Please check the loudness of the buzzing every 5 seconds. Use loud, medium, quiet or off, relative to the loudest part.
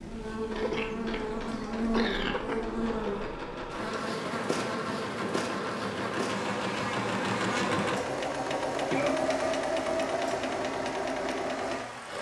loud, loud, medium.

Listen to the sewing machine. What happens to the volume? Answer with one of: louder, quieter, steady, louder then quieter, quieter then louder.
louder.